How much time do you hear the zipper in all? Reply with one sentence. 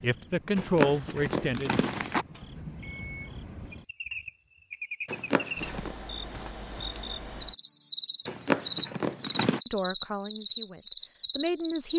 You can hear the zipper for 4 seconds altogether.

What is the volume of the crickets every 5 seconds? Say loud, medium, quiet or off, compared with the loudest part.
medium, loud, loud.